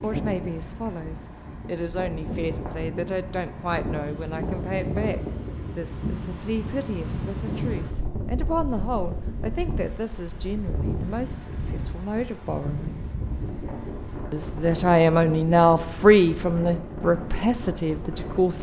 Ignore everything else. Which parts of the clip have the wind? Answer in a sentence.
You can hear the wind from 0.0 to 18.5 s.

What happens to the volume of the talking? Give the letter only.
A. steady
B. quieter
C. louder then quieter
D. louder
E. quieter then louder
D.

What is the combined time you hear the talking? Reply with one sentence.
You can hear the talking for 17 seconds altogether.